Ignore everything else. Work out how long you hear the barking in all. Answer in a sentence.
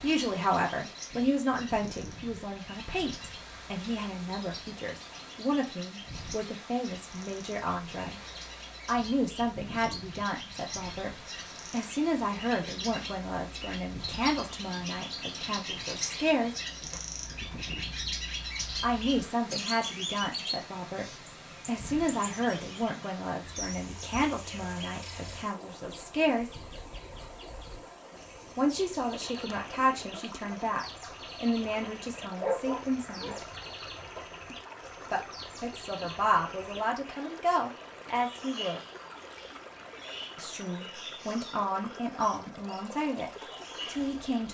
The barking can be heard for 2 seconds in total.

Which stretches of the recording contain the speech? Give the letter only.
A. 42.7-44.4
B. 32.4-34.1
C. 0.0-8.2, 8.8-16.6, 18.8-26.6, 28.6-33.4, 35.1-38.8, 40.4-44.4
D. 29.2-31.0
C.